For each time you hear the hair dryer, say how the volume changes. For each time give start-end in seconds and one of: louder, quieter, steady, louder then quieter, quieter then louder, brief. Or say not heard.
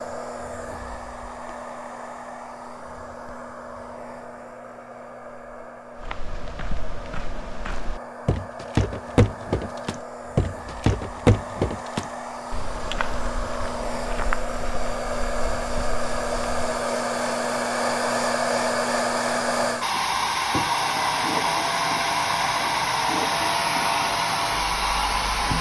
0.0-25.5 louder.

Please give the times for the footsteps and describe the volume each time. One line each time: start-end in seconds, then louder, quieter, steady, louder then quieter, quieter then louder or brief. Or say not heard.
6.0-16.6 louder then quieter.